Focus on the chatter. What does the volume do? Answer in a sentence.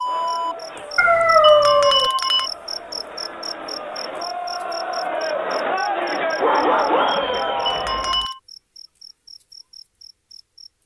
The loudness of the chatter goes up.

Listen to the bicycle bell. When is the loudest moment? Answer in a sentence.
The loudest moment of the bicycle bell is at 2 seconds.